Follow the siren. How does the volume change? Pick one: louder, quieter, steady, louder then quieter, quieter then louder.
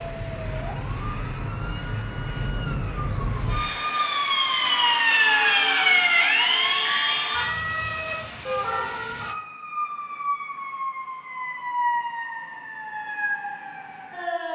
louder then quieter.